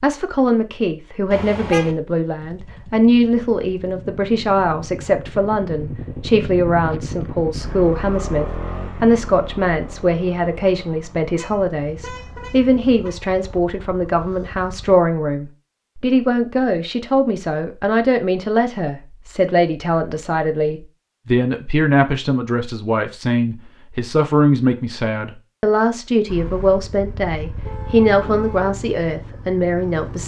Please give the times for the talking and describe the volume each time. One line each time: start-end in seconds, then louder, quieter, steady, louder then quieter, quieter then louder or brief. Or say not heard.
0.0-30.2 steady.